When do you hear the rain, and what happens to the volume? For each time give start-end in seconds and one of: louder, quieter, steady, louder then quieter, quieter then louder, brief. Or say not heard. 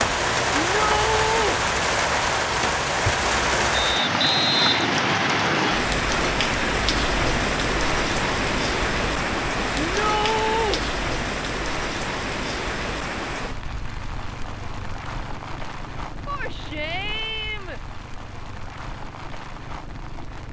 0.0-20.4 quieter.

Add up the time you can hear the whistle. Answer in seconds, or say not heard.
2 s.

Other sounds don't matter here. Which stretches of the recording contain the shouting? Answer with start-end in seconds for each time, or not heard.
0.6-1.6, 9.8-10.8, 16.2-17.8.